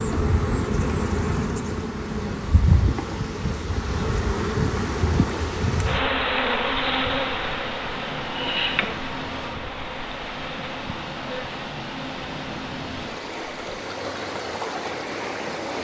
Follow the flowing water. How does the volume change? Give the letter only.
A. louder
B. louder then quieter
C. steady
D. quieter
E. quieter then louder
A.